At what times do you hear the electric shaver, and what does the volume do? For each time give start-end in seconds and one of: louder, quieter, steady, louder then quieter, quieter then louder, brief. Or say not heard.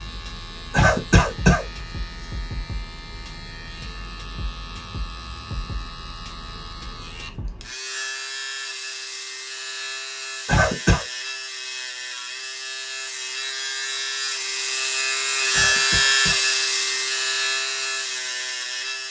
0.0-19.0 louder.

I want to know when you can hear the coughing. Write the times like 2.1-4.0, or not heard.
0.7-1.6, 10.4-11.1, 15.5-16.4.